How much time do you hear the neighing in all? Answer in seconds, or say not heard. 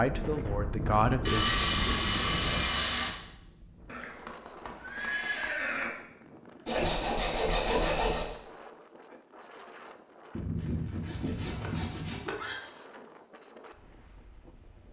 3 s.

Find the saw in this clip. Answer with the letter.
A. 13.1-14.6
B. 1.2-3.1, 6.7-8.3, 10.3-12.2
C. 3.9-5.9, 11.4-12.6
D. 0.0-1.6
B.